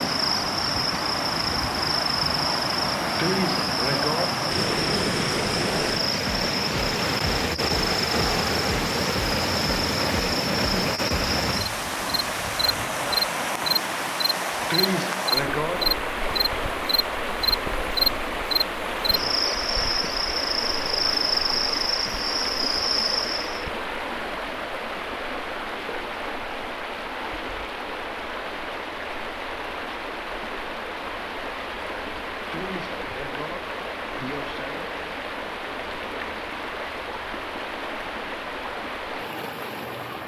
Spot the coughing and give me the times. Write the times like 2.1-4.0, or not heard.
3.1-4.3, 14.7-15.9, 32.5-34.9.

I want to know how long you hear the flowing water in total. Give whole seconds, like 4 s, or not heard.
40 s.